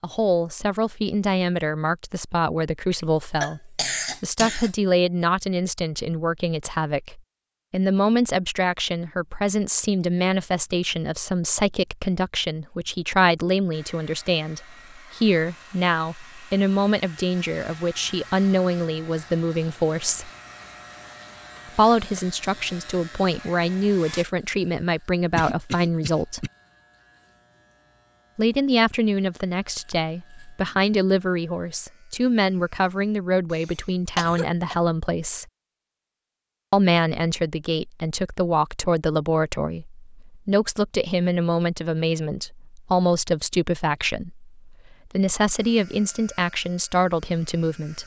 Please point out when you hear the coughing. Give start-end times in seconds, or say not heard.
3.0-4.7, 25.4-26.5, 33.5-34.8.